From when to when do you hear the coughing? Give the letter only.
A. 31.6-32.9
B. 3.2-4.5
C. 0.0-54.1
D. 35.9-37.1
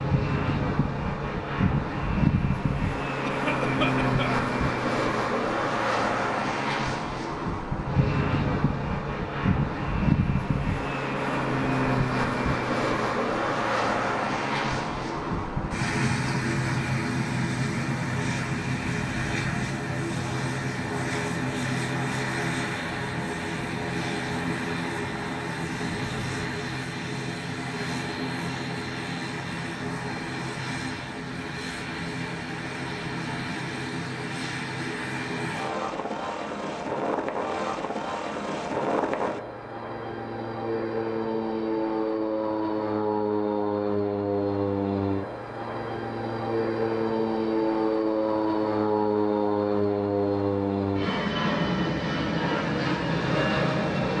B.